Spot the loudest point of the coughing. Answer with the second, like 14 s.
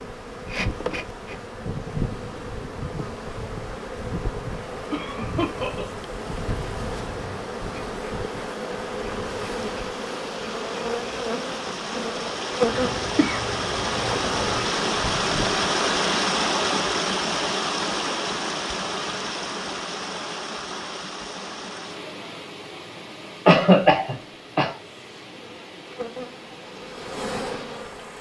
24 s.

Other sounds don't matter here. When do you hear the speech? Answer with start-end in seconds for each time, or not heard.
not heard.